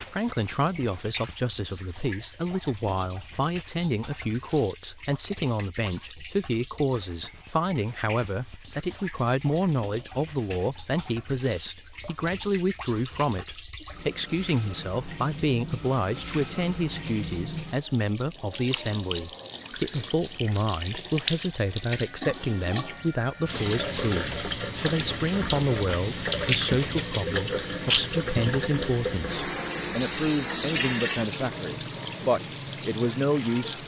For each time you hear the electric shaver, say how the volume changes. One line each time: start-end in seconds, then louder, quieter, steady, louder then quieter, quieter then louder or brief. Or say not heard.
not heard.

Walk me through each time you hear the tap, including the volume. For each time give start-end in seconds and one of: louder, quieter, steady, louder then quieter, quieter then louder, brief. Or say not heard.
0.0-33.8 louder.